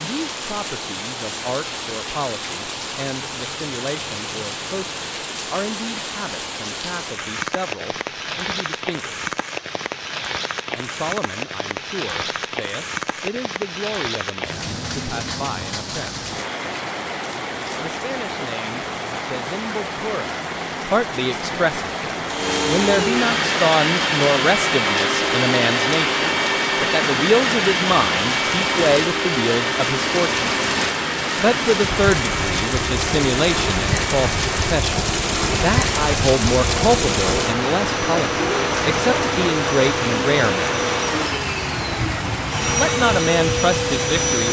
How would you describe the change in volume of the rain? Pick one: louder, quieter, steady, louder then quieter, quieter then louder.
louder.